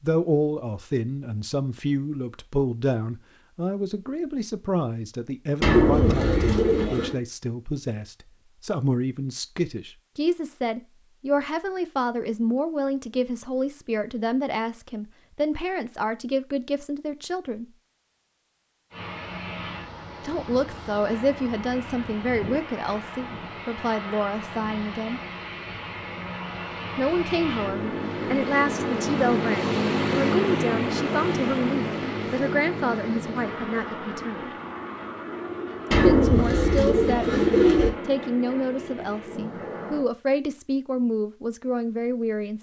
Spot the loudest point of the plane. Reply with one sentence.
The loudest moment of the plane is at 30 seconds.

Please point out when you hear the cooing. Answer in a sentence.
The cooing can be heard from 5.6 to 7.2 s and from 35.9 to 37.9 s.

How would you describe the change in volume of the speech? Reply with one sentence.
The loudness of the speech stays about the same.